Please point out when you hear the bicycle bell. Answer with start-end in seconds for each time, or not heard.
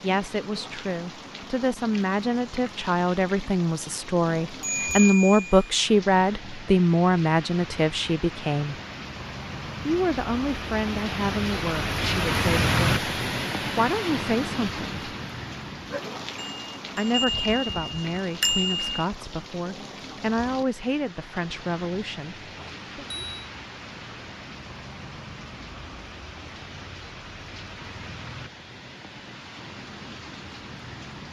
4.6-5.7, 16.4-19.1, 22.6-23.5.